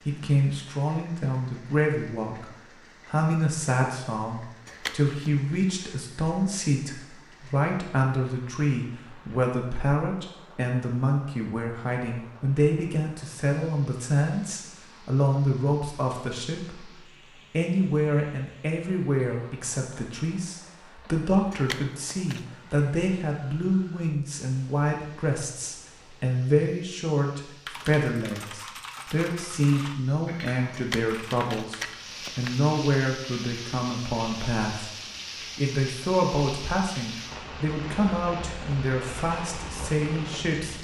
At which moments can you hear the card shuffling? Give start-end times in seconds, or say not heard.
4.7-5.2, 21.5-22.4, 30.7-32.6.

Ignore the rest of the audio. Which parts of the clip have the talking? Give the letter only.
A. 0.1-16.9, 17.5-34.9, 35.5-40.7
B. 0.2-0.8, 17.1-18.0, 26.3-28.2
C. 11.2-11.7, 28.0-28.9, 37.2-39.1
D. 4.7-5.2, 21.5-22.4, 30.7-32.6
A.